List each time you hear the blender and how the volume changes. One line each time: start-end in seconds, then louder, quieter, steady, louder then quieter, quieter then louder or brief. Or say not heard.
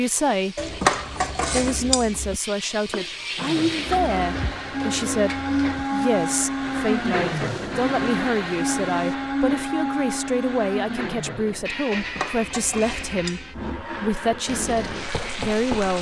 3.4-15.9 quieter.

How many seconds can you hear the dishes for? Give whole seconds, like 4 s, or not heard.
4 s.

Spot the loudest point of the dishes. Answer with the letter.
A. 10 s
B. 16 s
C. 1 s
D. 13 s
C.